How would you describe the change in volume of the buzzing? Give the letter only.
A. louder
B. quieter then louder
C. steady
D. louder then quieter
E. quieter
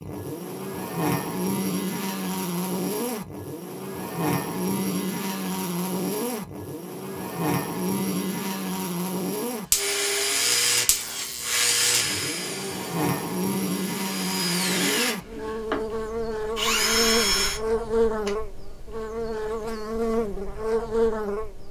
C.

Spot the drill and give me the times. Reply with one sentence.
The drill can be heard from 9.8 to 18.4 s.